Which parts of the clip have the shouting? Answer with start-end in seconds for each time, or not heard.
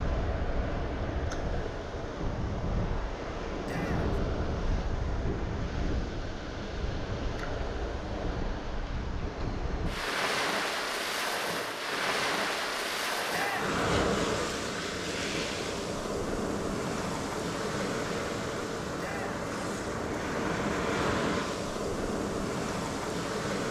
3.6-4.2, 13.3-13.8, 18.9-19.4.